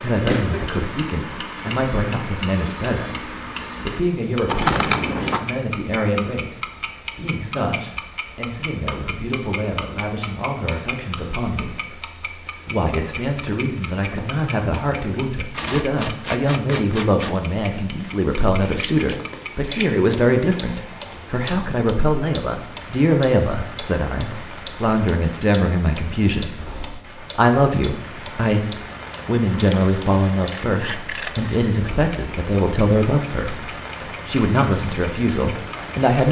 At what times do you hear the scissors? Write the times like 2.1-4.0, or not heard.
4.5-5.4, 18.6-19.9, 29.7-31.6.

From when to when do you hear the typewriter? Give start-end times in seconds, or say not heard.
15.5-17.4.